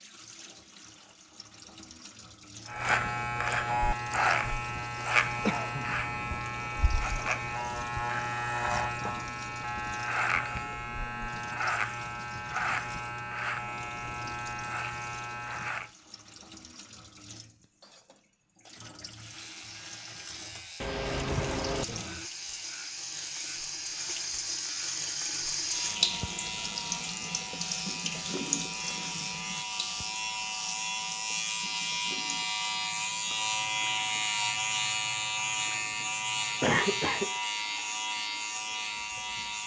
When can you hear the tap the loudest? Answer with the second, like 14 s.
26 s.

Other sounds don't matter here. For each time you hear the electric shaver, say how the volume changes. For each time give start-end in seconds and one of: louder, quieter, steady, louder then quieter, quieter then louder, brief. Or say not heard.
2.6-15.9 quieter
19.1-39.6 louder.